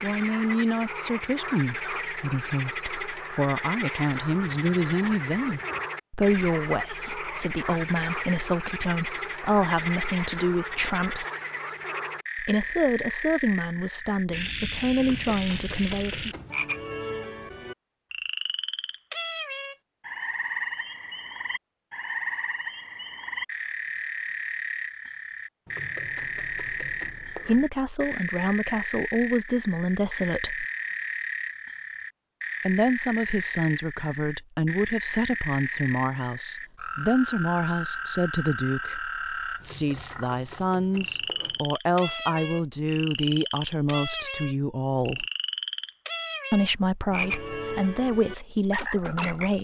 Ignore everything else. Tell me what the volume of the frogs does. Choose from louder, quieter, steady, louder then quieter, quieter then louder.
steady.